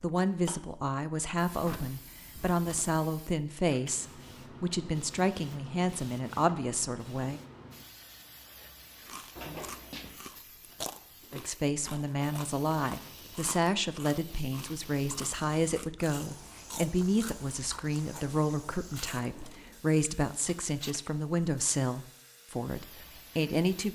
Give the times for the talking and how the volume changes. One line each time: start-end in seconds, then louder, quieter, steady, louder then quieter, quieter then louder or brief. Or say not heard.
0.0-7.4 steady
11.3-23.9 steady.